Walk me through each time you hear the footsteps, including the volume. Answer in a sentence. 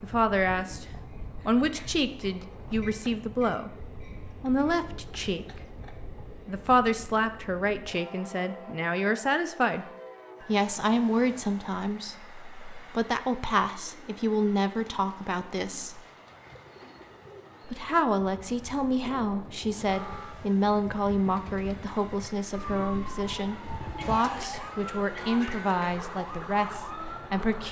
The footsteps can't be heard in this clip.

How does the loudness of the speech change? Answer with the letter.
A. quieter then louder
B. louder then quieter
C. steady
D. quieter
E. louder
C.